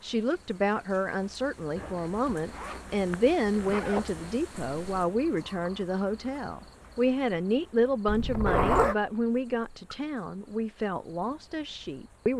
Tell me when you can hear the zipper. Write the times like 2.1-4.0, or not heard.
1.8-4.3, 8.1-8.9.